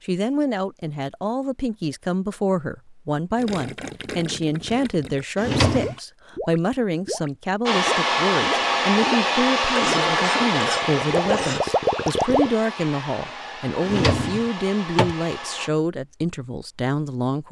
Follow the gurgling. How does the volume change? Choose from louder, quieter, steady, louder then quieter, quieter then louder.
louder.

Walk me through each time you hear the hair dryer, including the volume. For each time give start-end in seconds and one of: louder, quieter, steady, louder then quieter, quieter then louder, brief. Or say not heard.
7.7-15.7 quieter.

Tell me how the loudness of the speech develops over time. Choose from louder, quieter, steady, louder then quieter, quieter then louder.
steady.